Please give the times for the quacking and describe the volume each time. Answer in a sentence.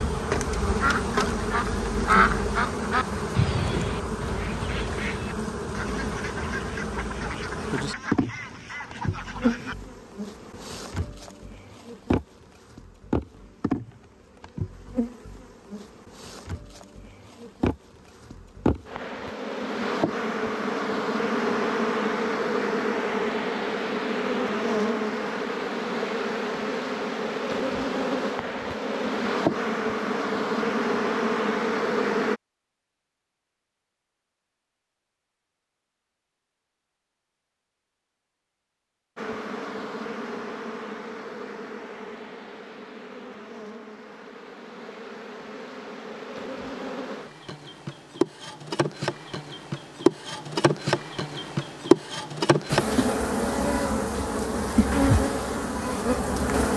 You can hear the quacking from 0.7 to 9.8 s, getting quieter.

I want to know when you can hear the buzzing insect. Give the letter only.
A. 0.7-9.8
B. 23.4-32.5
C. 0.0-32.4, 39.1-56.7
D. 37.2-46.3
C.